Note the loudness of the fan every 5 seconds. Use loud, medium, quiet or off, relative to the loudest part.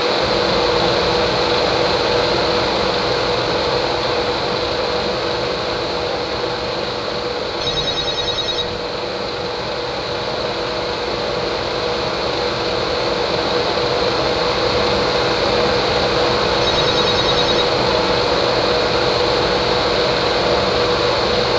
loud, medium, loud, loud, loud.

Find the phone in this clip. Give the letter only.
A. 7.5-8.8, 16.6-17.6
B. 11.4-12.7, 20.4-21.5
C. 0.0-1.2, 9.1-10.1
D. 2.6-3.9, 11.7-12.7
A.